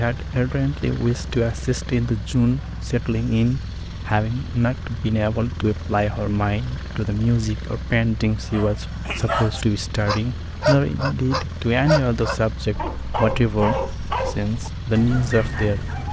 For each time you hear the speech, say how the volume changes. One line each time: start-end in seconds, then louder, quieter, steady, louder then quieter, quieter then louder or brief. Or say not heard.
0.0-15.9 steady.